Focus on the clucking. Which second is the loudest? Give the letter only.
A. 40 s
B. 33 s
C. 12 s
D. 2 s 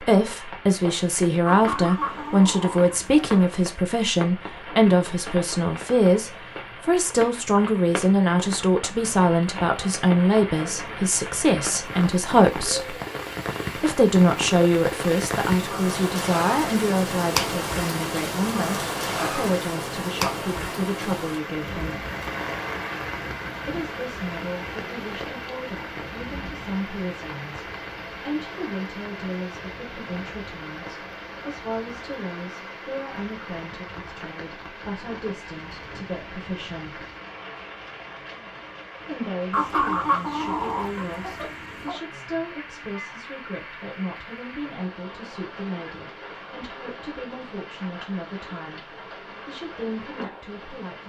A.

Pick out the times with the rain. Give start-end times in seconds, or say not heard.
0.0-51.0.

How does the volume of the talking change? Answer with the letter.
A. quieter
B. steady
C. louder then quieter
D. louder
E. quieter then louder
A.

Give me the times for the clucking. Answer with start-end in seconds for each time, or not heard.
1.4-3.4, 39.5-42.0.